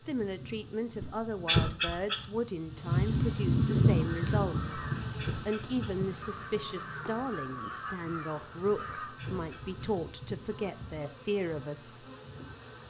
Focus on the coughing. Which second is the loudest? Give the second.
2 s.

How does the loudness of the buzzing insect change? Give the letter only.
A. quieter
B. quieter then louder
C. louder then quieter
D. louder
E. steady
C.